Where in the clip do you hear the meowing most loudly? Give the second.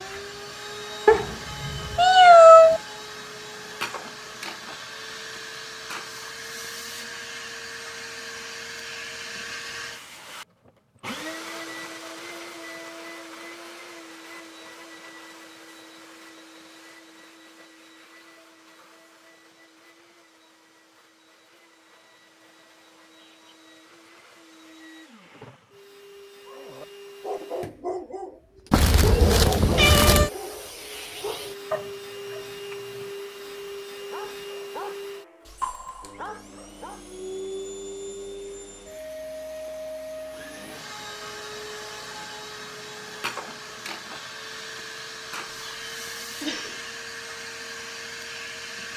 2 s.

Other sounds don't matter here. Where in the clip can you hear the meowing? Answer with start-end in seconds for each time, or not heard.
1.1-2.8, 28.7-30.3, 45.5-46.8.